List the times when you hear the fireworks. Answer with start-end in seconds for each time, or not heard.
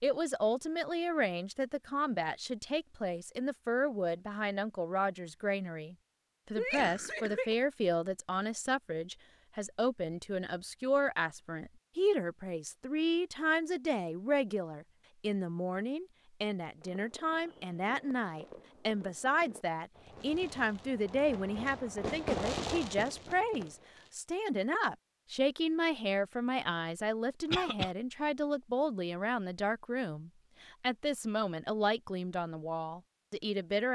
16.8-24.1.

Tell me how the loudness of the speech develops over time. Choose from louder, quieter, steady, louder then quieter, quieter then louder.
steady.